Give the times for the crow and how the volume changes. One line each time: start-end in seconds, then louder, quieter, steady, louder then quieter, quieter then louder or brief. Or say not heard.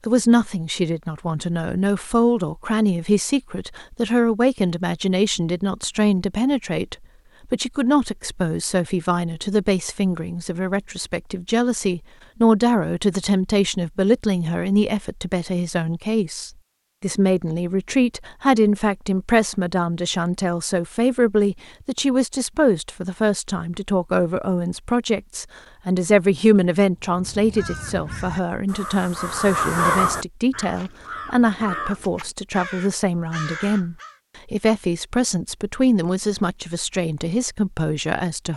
26.9-34.1 louder then quieter.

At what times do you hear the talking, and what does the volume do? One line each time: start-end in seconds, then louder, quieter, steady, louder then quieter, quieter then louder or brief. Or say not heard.
0.1-38.5 steady.